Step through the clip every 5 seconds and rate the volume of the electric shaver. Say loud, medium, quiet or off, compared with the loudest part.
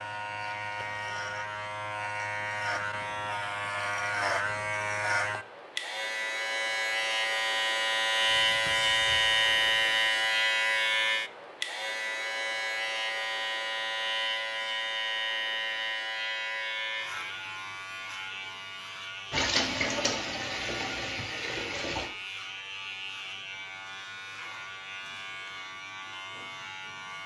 medium, loud, loud, medium, quiet, quiet.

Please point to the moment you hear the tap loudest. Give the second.
20 s.